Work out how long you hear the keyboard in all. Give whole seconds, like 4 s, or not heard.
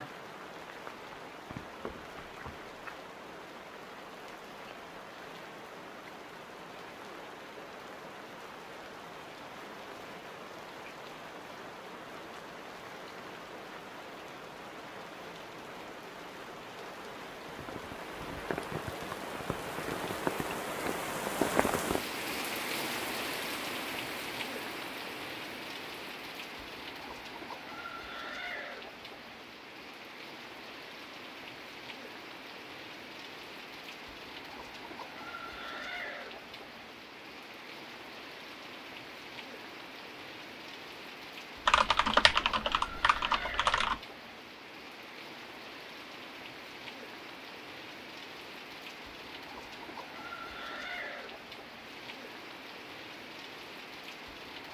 2 s.